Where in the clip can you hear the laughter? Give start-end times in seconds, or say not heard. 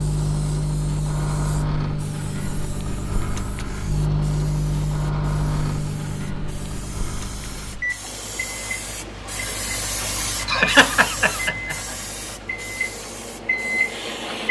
10.4-11.8.